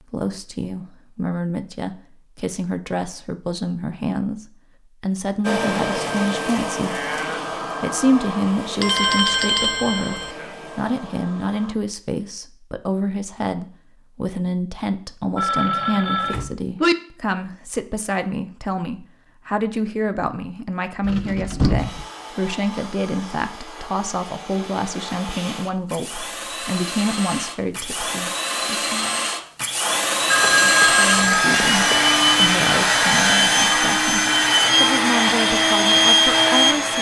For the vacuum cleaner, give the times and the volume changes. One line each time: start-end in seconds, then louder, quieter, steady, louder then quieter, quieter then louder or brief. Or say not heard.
5.4-11.8 quieter
21.8-36.9 louder.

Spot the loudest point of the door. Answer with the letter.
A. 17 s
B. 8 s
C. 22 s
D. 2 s
C.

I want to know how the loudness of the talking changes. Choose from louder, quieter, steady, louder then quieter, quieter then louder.
steady.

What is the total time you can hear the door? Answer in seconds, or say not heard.
2 s.